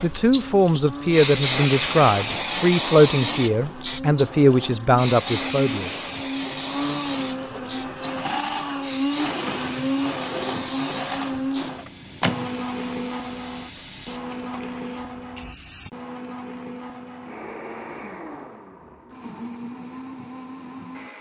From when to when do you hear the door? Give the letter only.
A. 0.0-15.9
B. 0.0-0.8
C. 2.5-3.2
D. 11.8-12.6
D.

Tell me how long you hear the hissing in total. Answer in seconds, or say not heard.
16 s.